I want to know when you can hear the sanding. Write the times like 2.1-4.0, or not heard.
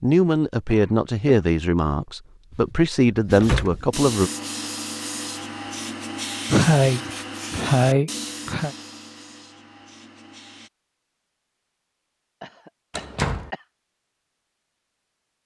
3.2-10.7.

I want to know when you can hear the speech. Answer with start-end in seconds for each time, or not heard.
0.0-4.3.